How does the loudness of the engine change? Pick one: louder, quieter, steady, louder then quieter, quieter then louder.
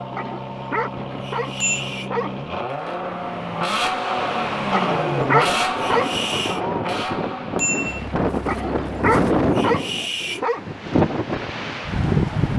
louder then quieter.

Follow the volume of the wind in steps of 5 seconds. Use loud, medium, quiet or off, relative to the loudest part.
quiet, loud, loud.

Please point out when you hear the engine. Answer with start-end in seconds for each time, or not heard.
0.0-9.4.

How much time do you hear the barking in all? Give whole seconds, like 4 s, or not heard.
6 s.